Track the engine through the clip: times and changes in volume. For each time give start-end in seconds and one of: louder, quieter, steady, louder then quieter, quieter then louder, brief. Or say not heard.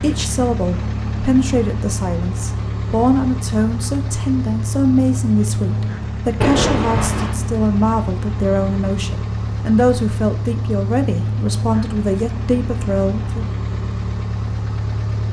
0.0-15.2 steady.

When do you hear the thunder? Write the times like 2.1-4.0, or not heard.
6.4-7.3.